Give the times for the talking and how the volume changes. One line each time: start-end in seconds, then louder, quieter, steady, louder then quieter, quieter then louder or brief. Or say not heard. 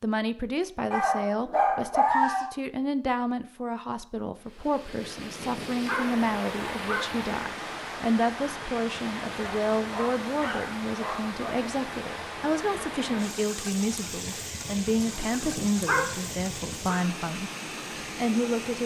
0.0-17.5 steady
18.1-18.8 brief.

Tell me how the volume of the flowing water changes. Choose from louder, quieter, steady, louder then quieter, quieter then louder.
steady.